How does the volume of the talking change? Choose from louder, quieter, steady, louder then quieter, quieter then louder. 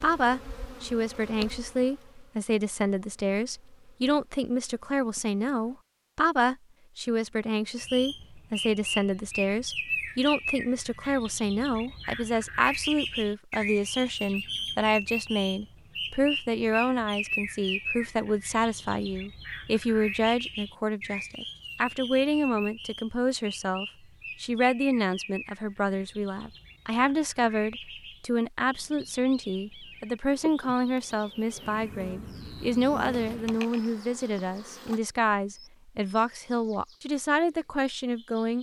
steady.